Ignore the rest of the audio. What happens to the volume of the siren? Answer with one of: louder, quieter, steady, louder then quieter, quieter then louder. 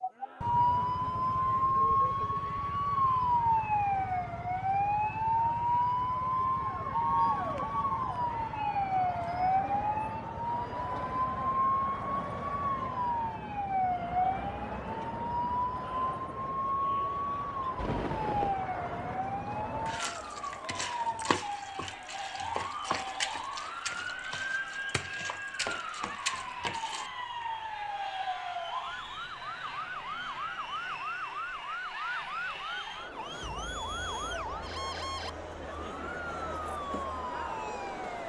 quieter.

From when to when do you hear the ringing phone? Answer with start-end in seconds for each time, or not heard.
17.8-18.6.